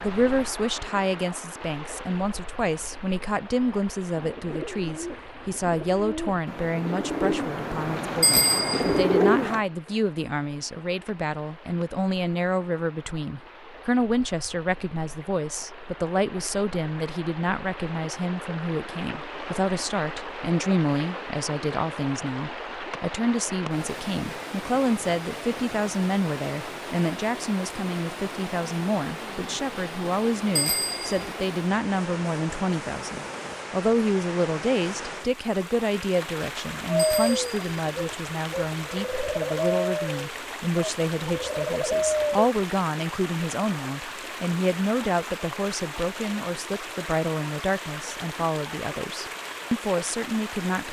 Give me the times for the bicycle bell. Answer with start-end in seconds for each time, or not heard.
8.2-9.1, 30.6-31.3, 37.0-37.8.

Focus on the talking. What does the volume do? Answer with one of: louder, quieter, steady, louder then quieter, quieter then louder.
steady.